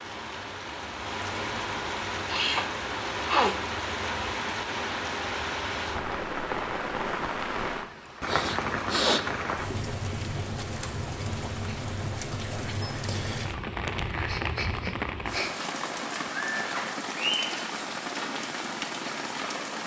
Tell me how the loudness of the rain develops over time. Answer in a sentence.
The loudness of the rain stays about the same.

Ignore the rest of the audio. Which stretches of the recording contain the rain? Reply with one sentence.
The rain can be heard from 0.0 to 19.8 s.